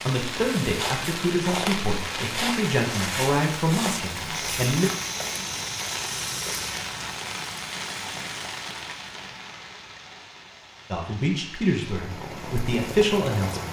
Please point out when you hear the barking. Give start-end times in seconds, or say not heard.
not heard.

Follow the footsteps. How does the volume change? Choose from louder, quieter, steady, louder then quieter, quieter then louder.
steady.